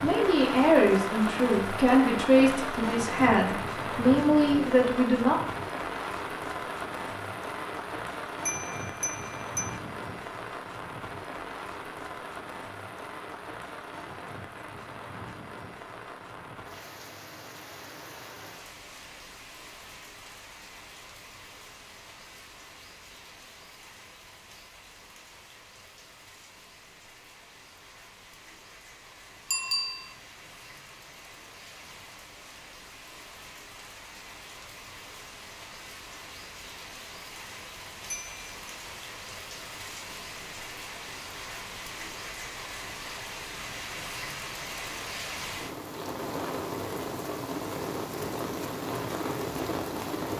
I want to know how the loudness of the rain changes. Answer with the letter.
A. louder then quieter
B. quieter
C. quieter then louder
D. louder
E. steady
C.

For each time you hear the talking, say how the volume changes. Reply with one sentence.
The talking can be heard from 0.0 to 5.3 s, at a steady volume.